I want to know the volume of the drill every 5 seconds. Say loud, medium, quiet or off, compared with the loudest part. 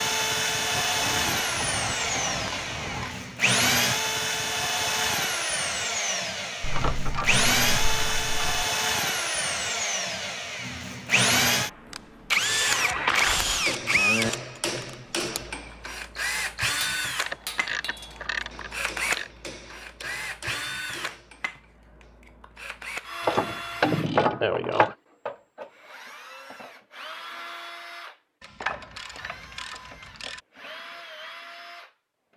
loud, loud, loud, medium, medium, quiet, quiet.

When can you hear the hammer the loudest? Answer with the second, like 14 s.
14 s.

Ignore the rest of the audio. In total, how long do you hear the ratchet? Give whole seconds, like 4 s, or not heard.
12 s.